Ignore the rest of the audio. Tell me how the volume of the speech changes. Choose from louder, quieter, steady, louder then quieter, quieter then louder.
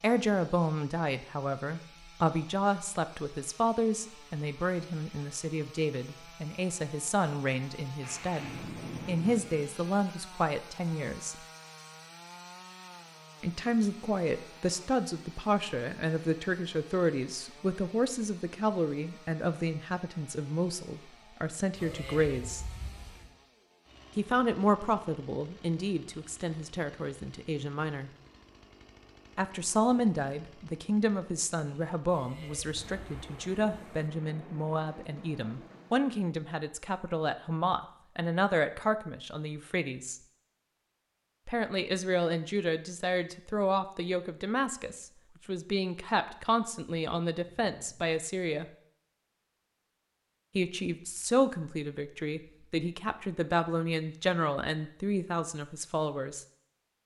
steady.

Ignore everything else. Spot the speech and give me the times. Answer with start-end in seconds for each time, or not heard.
0.0-11.3, 13.4-22.6, 24.1-28.1, 29.4-40.2, 41.5-48.6, 50.5-56.5.